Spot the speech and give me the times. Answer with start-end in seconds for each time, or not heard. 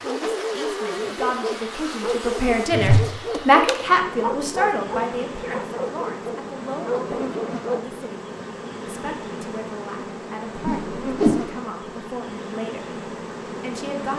0.0-14.1.